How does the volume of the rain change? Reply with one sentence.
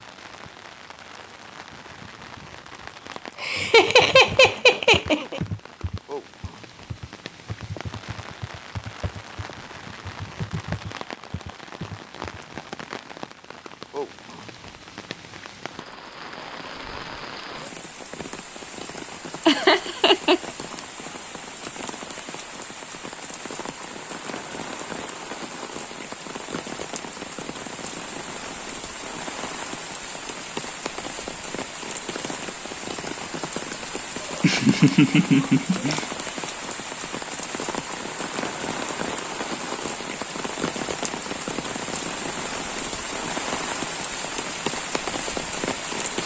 The loudness of the rain goes up.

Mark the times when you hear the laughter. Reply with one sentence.
The laughter can be heard from 3.4 to 5.4 s, from 19.4 to 20.4 s and from 34.4 to 36.0 s.